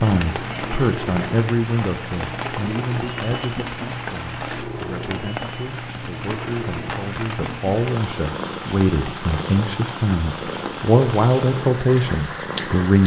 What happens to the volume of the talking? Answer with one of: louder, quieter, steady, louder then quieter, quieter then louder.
quieter then louder.